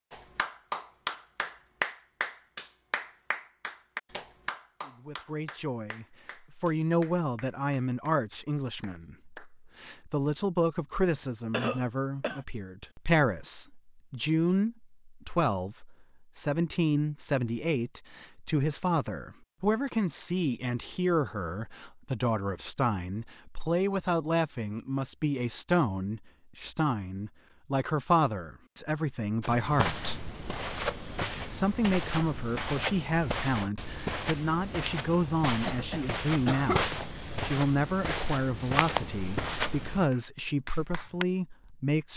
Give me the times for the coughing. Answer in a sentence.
You can hear the coughing from 11.5 to 12.4 s and from 35.6 to 36.9 s.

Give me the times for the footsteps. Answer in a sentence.
The footsteps can be heard from 29.4 to 40.0 s.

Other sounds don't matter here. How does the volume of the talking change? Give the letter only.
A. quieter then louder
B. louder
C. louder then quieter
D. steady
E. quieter
D.